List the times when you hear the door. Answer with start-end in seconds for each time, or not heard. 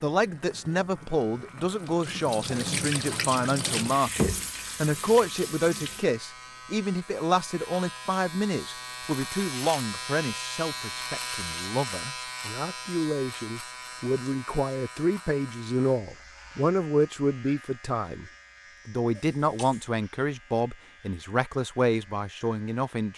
not heard.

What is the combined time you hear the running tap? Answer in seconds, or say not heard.
6 s.